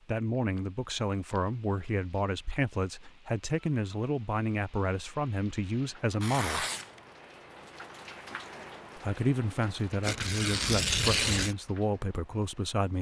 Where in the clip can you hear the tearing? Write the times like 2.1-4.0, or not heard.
0.3-2.2, 6.2-7.0, 10.0-11.6.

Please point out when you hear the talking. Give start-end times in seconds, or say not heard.
0.1-6.7, 8.9-12.9.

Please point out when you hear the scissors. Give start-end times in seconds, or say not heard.
not heard.